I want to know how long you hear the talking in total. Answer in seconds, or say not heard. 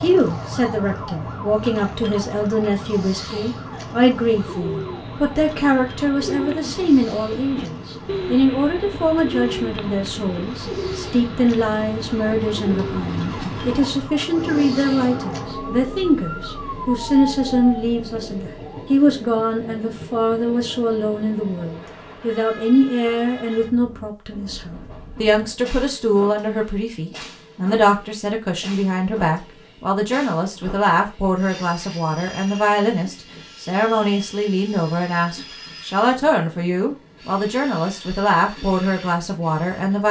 40 s.